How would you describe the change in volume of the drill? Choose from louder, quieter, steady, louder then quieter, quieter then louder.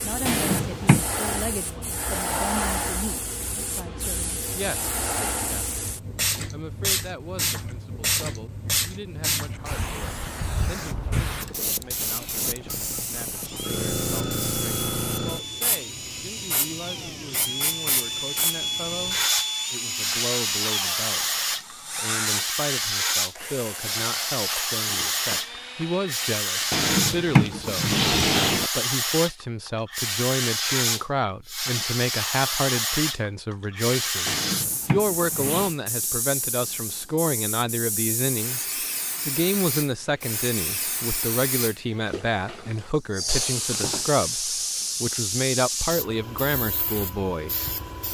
louder then quieter.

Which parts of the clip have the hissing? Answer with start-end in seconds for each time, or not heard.
0.0-48.0.